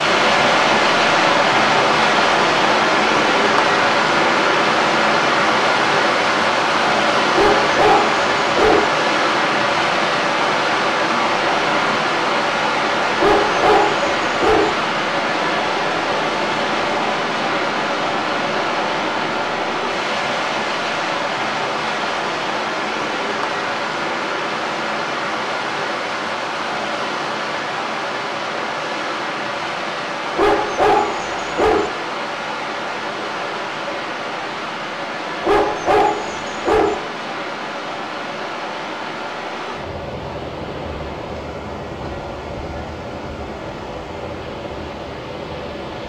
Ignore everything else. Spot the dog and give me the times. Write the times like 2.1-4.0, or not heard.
7.3-8.9, 13.2-14.7, 30.4-31.9, 35.4-37.0.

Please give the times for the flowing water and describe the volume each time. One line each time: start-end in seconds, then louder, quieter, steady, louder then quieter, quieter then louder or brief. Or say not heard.
0.0-46.0 quieter.